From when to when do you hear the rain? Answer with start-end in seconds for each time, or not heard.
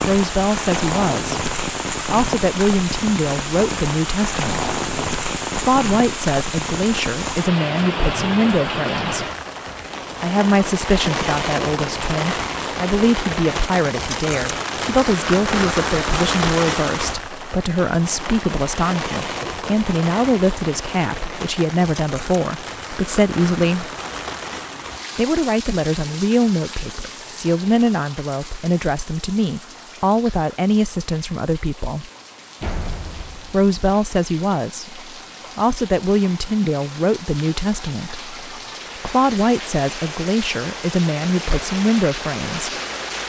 0.0-43.2.